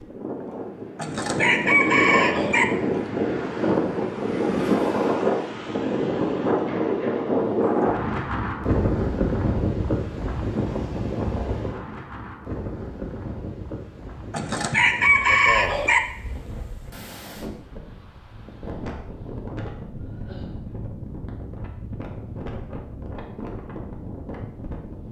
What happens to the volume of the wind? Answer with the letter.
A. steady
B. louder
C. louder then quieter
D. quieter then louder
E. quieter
E.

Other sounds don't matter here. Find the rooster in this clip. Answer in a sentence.
You can hear the rooster from 0.9 to 2.6 s and from 14.3 to 16.0 s.